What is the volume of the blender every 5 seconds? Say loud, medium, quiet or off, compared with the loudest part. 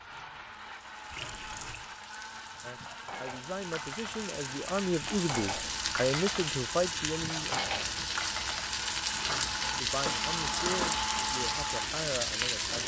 medium, medium, loud.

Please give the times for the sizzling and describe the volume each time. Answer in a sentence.
You can hear the sizzling from 0.0 to 12.8 s, getting louder.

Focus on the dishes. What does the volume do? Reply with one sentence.
The loudness of the dishes goes up.